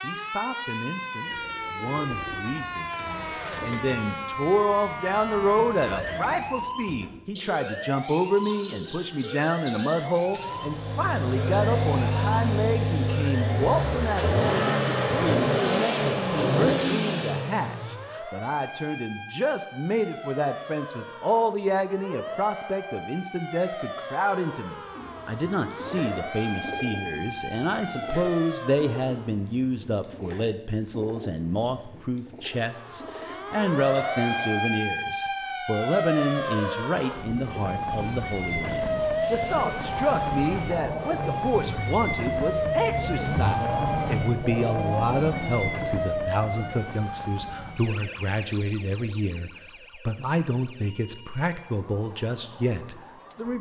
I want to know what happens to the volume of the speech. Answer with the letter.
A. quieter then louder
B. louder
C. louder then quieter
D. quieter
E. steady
E.